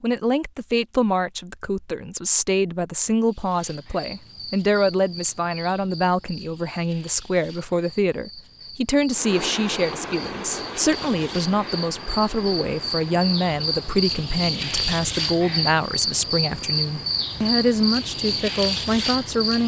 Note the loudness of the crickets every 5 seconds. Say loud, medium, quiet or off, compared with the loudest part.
quiet, quiet, loud, loud.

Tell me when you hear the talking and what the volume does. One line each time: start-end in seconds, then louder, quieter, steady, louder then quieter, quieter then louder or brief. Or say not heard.
0.0-19.6 steady.